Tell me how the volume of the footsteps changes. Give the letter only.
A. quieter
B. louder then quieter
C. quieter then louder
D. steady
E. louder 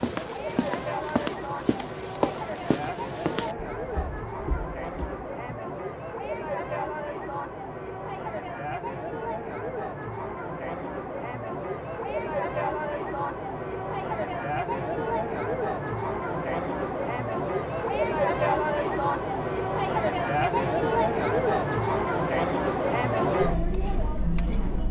A.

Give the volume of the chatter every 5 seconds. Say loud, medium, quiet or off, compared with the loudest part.
medium, medium, medium, loud, loud.